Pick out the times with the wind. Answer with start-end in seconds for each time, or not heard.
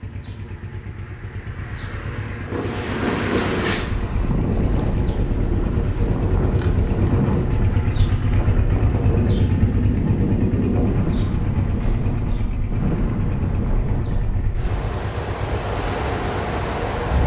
2.5-17.2.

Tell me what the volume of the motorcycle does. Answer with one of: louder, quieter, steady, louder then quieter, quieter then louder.
louder then quieter.